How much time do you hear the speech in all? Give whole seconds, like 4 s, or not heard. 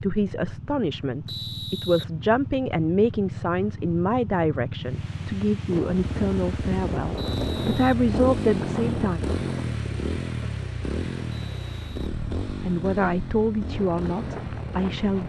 12 s.